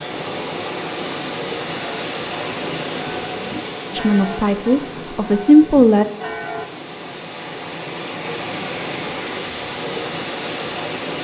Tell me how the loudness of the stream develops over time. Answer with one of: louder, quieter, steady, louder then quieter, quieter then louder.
quieter then louder.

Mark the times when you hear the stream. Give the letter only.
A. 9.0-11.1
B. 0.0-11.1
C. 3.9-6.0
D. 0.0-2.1
B.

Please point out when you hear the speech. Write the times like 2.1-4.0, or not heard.
3.9-6.0.